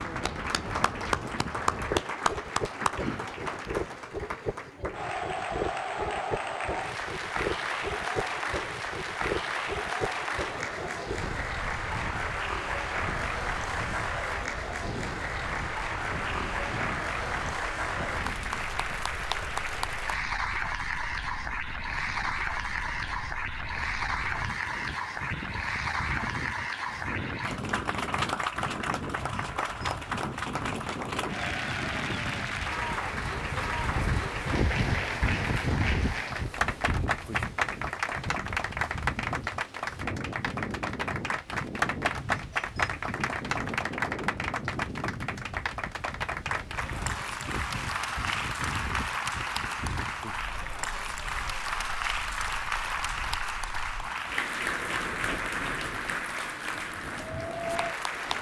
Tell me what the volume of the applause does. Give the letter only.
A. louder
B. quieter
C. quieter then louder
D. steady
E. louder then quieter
D.